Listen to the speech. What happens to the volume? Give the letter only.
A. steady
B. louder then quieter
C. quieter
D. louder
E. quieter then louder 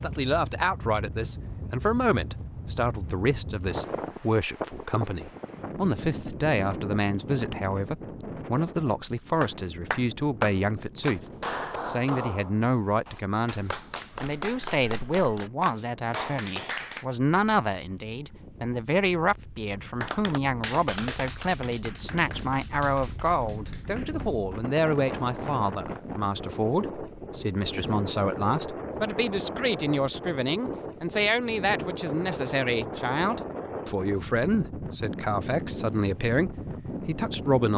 A.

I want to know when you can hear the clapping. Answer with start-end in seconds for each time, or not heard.
9.4-17.1, 20.0-24.3.